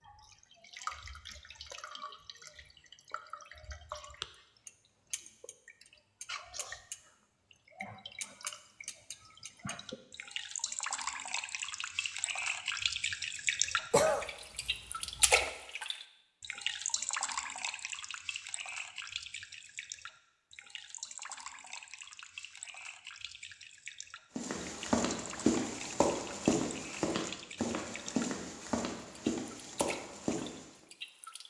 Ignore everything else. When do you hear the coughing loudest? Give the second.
14 s.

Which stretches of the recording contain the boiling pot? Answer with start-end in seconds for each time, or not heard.
not heard.